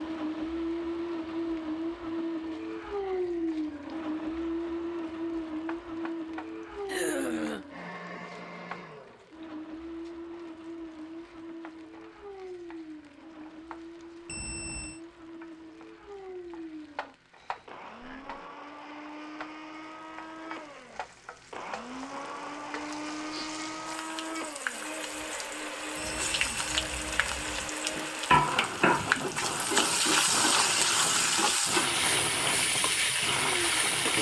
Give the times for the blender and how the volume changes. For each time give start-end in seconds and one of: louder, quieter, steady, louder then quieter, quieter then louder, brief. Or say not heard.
0.0-34.1 quieter then louder.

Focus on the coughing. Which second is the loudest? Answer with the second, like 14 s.
7 s.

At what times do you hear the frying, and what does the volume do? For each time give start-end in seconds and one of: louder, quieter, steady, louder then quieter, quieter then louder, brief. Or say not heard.
0.0-34.1 louder.